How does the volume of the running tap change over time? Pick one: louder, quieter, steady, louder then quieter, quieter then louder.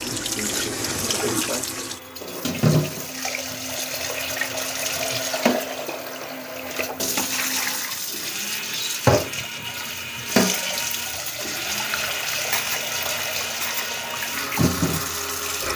steady.